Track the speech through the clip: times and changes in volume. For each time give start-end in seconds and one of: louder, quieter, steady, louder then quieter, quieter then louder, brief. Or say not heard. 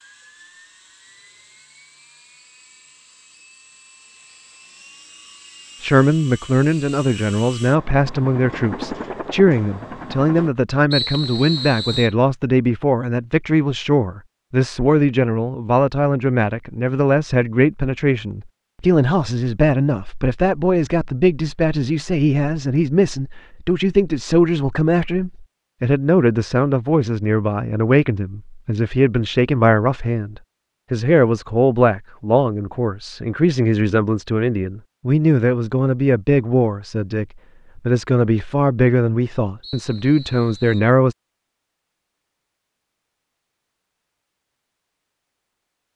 5.8-41.1 steady.